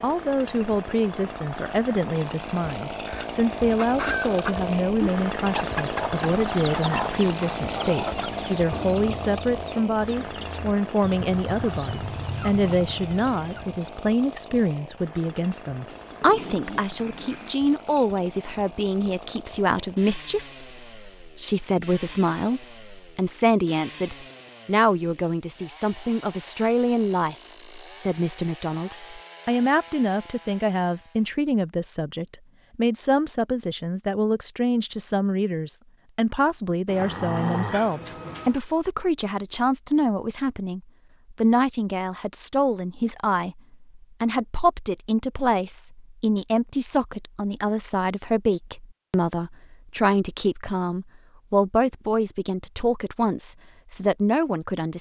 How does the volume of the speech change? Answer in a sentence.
The volume of the speech stays about the same.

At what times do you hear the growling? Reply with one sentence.
The growling can be heard from 15.8 to 17.6 s and from 36.9 to 38.6 s.